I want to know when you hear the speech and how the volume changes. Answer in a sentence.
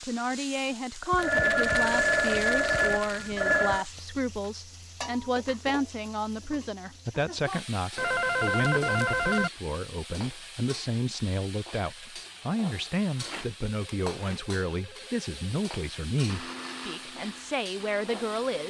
You can hear the speech from 0.0 to 18.6 s, at a steady volume.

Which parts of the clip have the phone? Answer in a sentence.
The phone can be heard from 1.1 to 3.9 s, from 8.0 to 9.5 s and from 13.8 to 15.6 s.